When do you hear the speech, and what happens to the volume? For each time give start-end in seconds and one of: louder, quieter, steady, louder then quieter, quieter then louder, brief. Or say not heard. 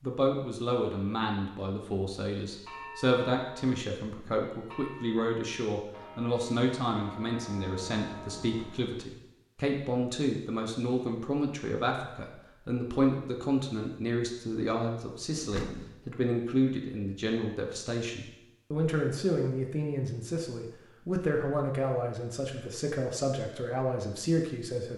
0.0-24.9 steady.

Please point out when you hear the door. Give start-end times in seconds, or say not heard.
15.3-16.0.